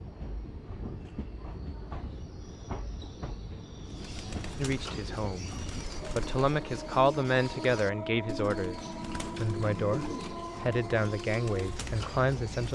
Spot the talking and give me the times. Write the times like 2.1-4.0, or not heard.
4.5-5.5, 6.1-12.7.